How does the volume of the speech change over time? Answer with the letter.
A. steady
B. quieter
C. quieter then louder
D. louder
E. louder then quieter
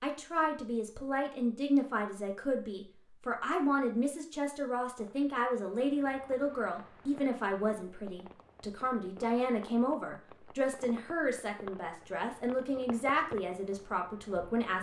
A.